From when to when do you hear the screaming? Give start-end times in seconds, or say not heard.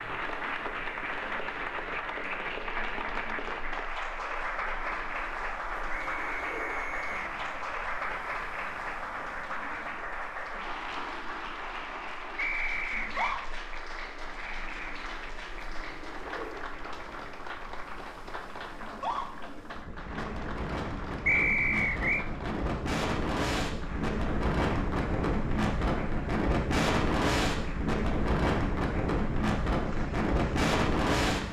12.9-13.4, 18.8-19.2.